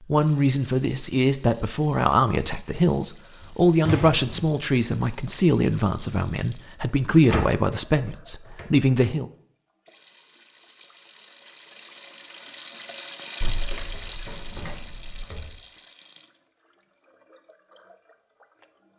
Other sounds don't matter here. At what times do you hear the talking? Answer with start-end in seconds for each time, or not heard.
0.1-9.2.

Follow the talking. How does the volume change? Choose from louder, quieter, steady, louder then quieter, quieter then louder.
steady.